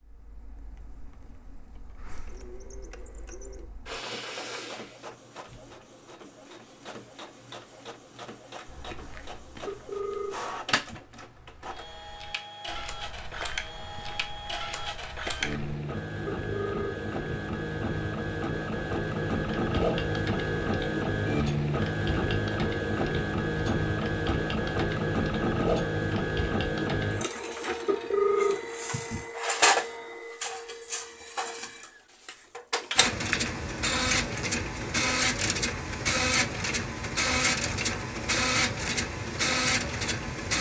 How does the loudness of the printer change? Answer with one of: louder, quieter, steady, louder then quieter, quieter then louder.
louder.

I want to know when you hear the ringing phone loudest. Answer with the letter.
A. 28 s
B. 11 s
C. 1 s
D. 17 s
A.